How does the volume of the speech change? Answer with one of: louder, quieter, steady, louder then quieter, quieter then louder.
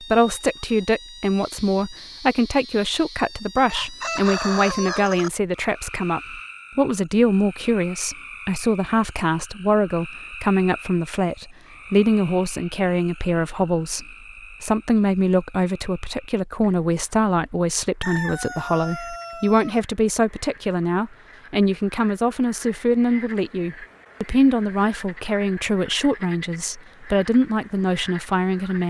steady.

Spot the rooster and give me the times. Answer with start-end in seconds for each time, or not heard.
3.6-5.3, 18.0-19.8.